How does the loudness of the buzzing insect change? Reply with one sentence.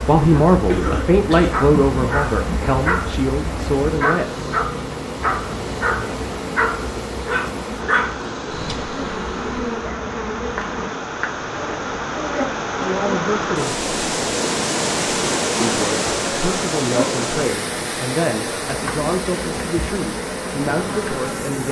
The loudness of the buzzing insect stays about the same.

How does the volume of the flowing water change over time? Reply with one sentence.
The volume of the flowing water goes up, then down.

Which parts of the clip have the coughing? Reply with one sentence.
You can hear the coughing from 0.7 to 1.6 s.